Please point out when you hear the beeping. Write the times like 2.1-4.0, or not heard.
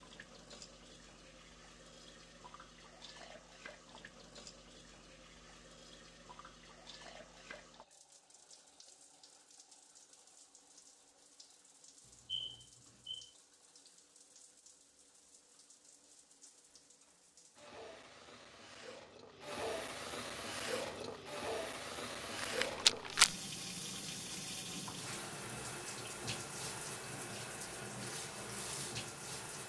12.1-13.3.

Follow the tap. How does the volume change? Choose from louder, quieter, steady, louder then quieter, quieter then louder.
quieter then louder.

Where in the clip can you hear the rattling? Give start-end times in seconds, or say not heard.
22.4-23.3.